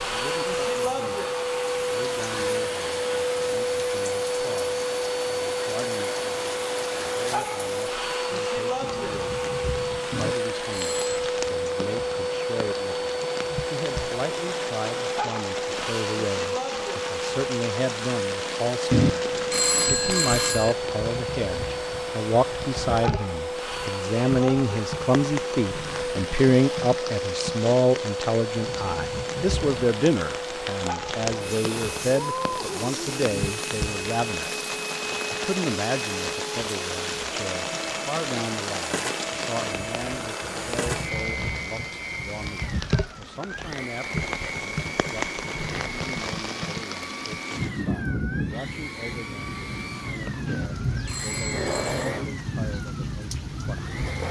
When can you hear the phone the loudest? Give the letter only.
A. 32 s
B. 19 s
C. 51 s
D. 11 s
B.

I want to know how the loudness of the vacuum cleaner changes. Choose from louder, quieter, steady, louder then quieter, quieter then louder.
quieter.